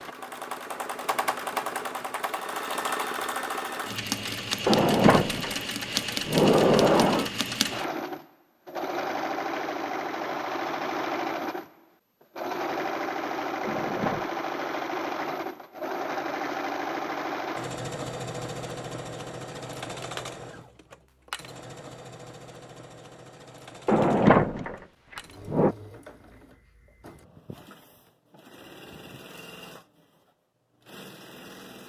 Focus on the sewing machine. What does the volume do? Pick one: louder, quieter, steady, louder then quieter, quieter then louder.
quieter.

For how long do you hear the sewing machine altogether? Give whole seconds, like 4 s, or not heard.
32 s.